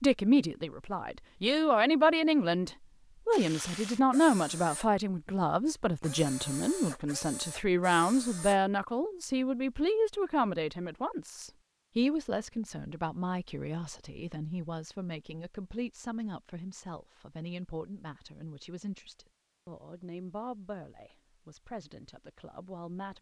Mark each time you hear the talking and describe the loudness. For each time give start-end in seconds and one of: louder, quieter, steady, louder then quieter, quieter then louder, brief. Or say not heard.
0.0-23.1 quieter.